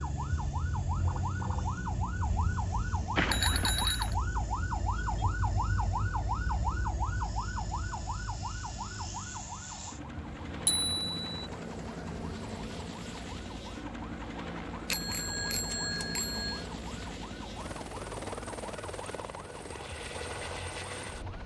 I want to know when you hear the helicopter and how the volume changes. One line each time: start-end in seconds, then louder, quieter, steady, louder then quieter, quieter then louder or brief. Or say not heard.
0.0-21.4 louder.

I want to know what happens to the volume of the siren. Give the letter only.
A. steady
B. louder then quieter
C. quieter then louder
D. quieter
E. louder
D.